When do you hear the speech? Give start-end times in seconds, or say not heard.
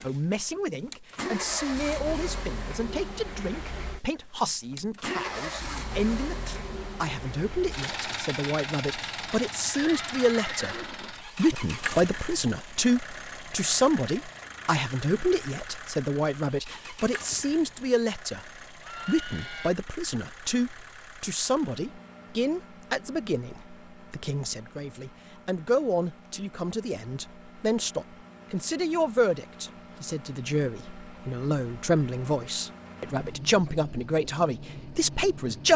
0.0-35.7.